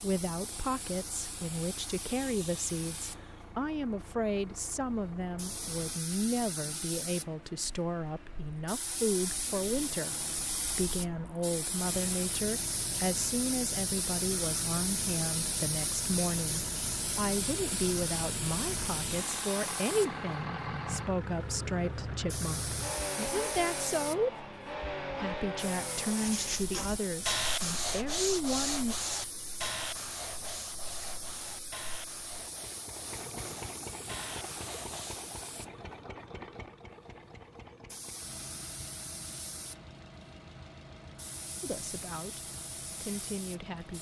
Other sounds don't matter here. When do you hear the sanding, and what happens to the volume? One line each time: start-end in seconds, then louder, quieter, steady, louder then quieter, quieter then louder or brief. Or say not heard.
26.1-35.3 quieter.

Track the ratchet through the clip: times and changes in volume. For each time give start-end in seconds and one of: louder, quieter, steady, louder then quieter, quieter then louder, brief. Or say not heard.
not heard.